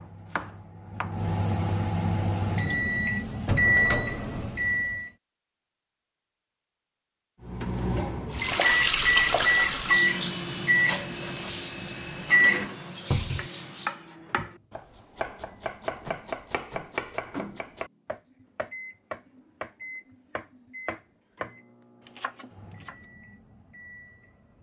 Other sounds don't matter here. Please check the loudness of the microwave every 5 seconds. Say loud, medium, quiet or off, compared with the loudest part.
loud, loud, loud, quiet, quiet.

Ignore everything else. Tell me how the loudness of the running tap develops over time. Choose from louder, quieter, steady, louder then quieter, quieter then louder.
quieter.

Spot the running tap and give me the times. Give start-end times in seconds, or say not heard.
8.3-14.1.